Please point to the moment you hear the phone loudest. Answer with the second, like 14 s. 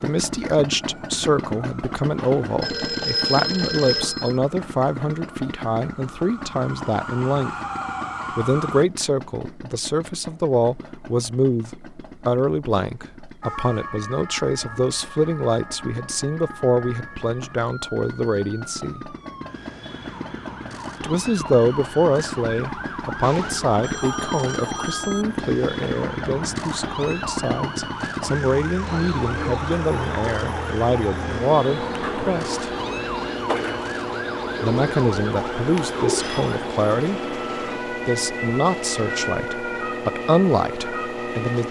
3 s.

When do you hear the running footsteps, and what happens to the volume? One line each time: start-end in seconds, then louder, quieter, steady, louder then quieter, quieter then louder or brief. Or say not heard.
not heard.